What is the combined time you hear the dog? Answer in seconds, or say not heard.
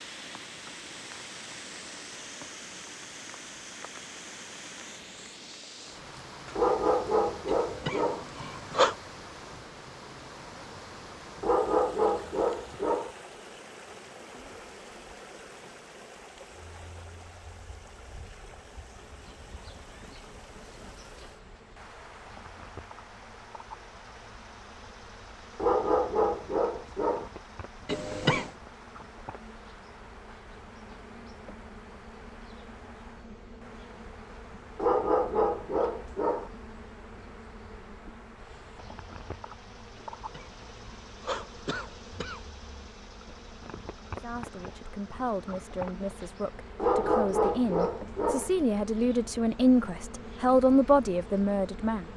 9 s.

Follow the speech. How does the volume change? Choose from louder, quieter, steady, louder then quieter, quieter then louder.
louder.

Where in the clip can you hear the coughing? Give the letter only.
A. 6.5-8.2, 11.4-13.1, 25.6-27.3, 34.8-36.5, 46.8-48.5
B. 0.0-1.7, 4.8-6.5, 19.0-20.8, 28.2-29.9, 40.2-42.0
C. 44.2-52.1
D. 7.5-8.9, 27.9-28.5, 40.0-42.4
D.